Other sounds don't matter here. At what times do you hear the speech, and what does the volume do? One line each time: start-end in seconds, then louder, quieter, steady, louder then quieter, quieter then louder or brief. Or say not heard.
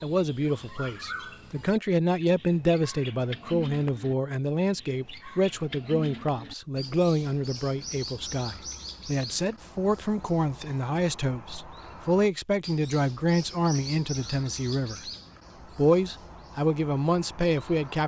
0.0-15.1 steady
15.8-18.0 brief.